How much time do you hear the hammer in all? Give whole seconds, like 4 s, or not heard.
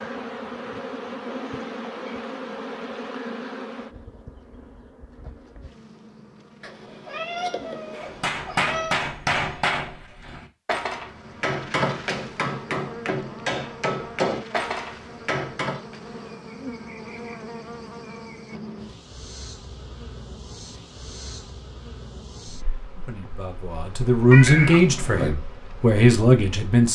8 s.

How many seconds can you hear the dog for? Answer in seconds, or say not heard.
not heard.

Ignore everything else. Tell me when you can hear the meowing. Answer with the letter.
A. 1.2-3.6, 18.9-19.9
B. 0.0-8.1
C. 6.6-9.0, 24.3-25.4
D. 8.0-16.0
C.